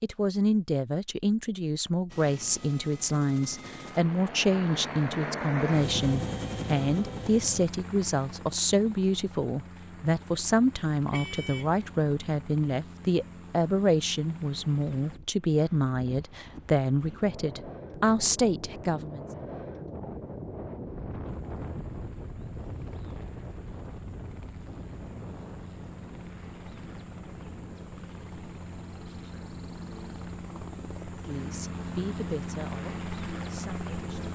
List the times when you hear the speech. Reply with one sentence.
The speech can be heard from 0.0 to 19.2 s and from 31.2 to 34.3 s.